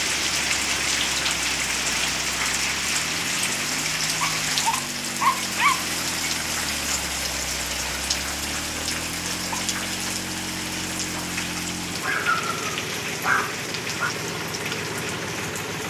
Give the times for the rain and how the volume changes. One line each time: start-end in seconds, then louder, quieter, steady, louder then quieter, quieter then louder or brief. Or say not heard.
0.0-15.8 quieter.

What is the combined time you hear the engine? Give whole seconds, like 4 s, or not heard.
16 s.